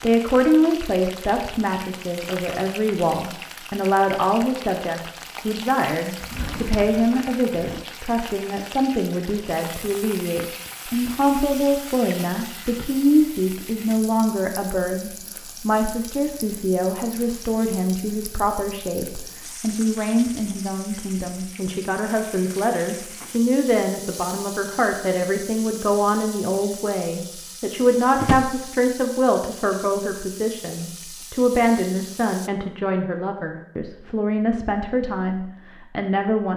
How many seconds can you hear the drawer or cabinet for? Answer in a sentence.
The drawer or cabinet can be heard for 2 seconds in total.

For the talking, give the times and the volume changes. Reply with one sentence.
You can hear the talking from 0.0 to 36.5 s, at a steady volume.